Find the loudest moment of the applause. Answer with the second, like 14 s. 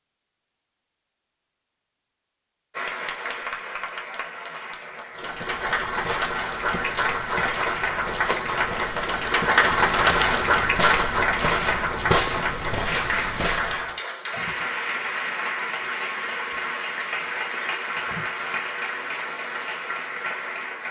10 s.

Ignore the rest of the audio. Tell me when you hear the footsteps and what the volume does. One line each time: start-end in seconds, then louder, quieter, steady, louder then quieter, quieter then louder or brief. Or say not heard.
5.2-13.9 louder.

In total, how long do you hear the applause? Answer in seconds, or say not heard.
18 s.